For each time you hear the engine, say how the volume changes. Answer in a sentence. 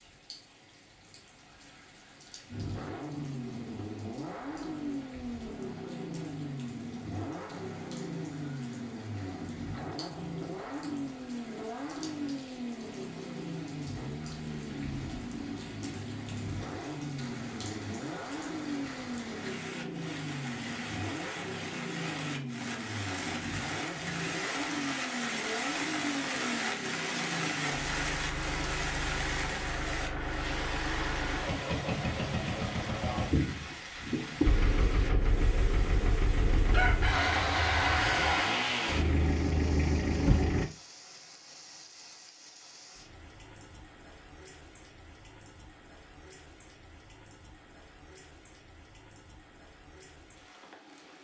You can hear the engine from 2.5 to 40.6 s, getting louder.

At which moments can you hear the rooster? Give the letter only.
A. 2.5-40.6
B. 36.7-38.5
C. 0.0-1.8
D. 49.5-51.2
B.